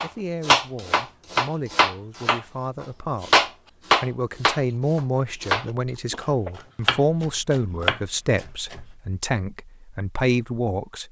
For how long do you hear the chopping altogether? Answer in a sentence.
You can hear the chopping for 9 seconds altogether.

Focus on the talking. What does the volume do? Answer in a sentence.
The loudness of the talking goes up.